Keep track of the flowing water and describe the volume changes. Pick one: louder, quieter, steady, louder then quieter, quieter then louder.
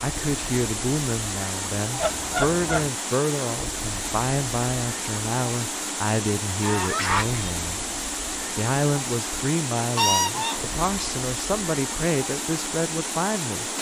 steady.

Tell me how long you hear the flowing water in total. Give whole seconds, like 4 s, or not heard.
14 s.